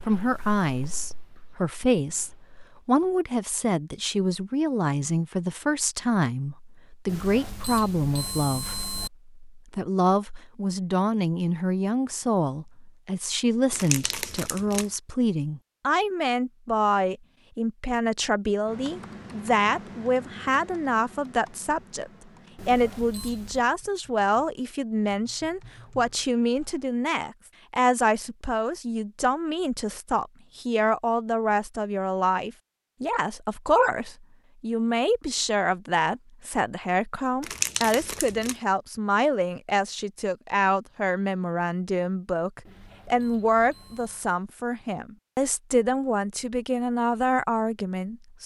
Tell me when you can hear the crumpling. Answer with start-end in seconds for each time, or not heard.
13.7-14.9, 37.4-38.5.